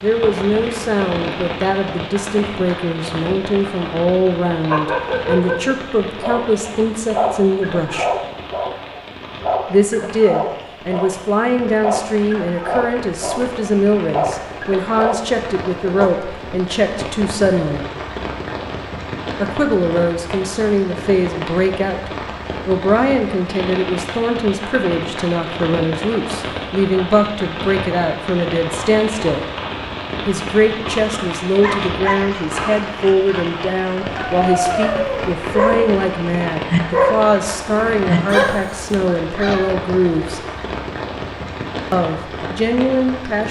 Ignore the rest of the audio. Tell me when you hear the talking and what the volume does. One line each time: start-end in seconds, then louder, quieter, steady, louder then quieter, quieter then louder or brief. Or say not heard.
0.0-8.1 steady
9.7-17.9 steady
19.4-29.4 steady
30.2-40.4 steady
41.9-43.4 brief.